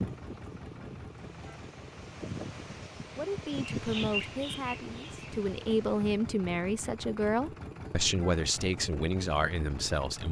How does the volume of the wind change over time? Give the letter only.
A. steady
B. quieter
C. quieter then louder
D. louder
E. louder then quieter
E.